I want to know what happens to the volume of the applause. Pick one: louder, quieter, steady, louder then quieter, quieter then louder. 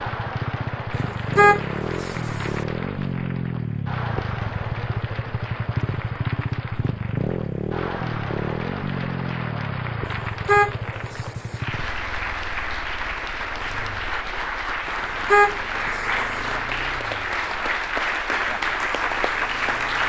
louder.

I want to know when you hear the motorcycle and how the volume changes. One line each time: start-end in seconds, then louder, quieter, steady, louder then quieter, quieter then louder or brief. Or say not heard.
0.0-20.0 quieter.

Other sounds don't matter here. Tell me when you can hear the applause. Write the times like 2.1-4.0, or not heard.
0.0-20.0.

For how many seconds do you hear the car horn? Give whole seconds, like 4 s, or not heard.
5 s.